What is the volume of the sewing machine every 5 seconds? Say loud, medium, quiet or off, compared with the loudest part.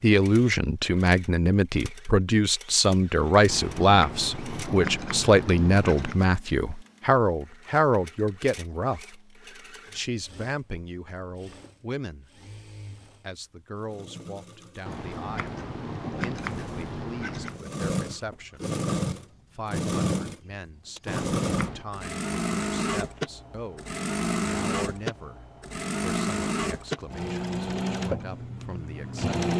quiet, quiet, quiet, loud, loud, loud.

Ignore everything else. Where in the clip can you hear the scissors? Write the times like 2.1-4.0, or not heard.
3.5-6.2, 14.8-17.6, 21.1-21.9.